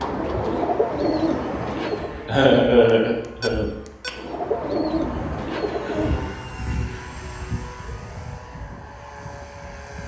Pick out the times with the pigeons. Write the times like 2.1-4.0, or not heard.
0.0-2.3, 4.1-6.5.